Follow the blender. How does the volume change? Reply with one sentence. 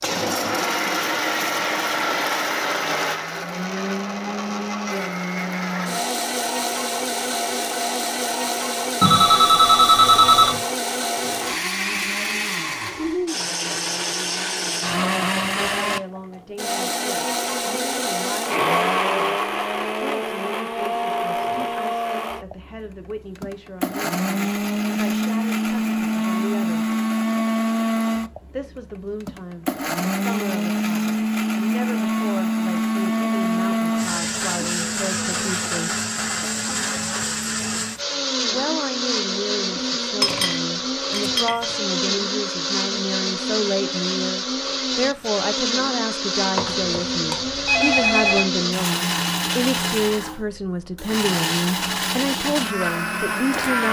The loudness of the blender stays about the same.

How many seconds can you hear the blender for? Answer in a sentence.
The blender can be heard for 54 seconds in total.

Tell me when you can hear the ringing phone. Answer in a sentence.
The ringing phone can be heard from 9.0 to 10.6 s and from 46.5 to 48.5 s.